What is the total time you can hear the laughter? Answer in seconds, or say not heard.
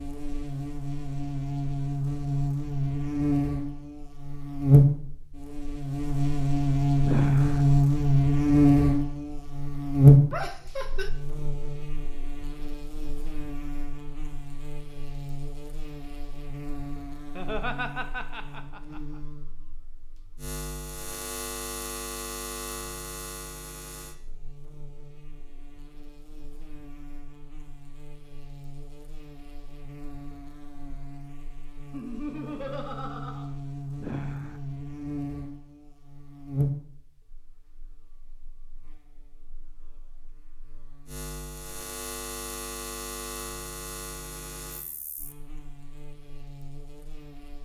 4 s.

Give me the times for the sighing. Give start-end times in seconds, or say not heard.
7.0-7.7, 34.0-34.6.